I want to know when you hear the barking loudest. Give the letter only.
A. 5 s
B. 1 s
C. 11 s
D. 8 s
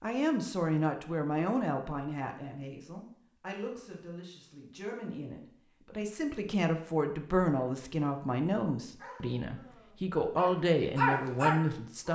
C.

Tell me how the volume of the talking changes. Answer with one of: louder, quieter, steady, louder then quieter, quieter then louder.
quieter then louder.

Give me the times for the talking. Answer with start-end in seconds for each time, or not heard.
0.0-12.1.